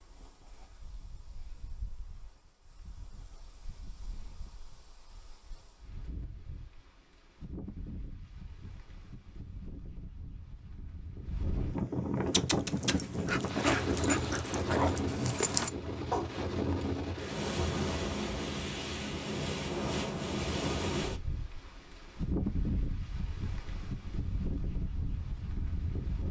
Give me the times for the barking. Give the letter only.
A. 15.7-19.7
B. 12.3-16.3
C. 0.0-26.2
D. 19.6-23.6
B.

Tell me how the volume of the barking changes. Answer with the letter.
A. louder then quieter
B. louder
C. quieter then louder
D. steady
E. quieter
B.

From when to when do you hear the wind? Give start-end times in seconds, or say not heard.
0.0-26.2.